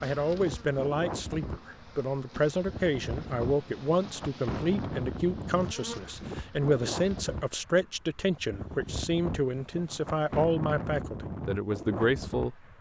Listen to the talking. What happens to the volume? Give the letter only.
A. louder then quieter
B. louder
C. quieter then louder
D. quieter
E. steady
E.